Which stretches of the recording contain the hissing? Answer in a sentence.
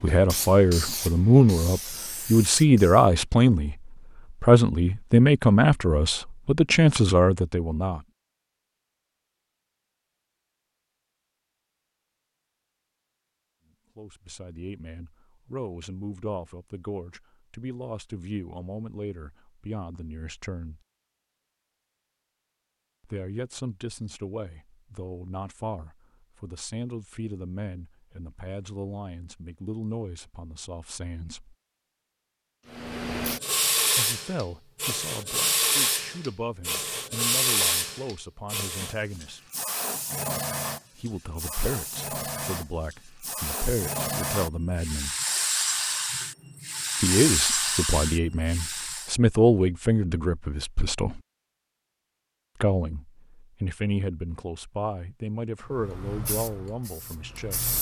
The hissing can be heard from 0.0 to 3.1 s, from 32.7 to 49.1 s and from 55.6 to 57.7 s.